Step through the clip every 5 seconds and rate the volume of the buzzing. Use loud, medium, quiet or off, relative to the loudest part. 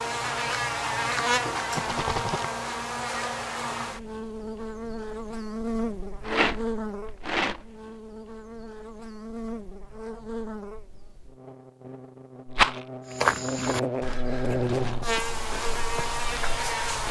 loud, medium, loud, loud.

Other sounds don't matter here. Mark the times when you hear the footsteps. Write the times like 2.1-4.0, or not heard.
13.1-17.0.